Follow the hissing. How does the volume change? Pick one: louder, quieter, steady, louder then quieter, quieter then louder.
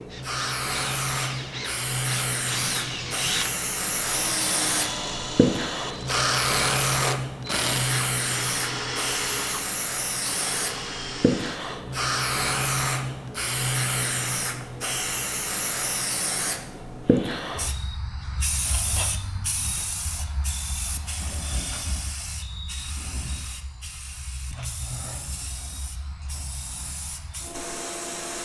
quieter.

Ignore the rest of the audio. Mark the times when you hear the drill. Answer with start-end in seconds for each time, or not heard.
0.0-11.8.